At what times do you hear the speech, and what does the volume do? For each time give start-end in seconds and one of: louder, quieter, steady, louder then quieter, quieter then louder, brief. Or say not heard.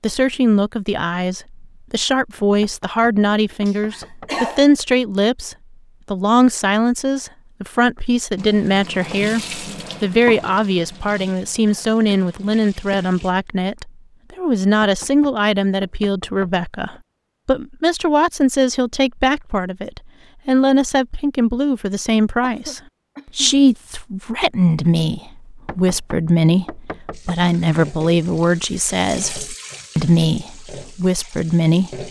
0.0-32.0 steady.